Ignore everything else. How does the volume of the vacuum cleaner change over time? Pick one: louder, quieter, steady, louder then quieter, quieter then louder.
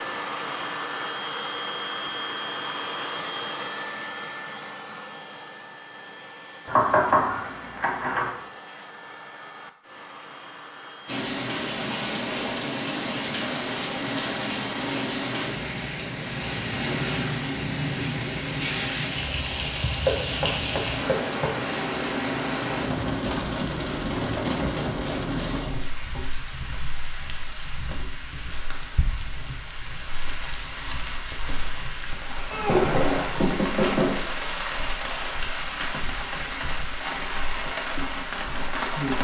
quieter.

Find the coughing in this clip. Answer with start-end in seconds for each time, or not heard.
not heard.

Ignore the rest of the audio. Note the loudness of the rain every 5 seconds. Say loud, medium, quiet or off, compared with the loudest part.
off, off, loud, loud, loud, medium, medium, loud.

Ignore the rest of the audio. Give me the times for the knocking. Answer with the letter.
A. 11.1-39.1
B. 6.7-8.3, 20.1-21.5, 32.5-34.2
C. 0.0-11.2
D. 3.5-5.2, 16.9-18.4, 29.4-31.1
B.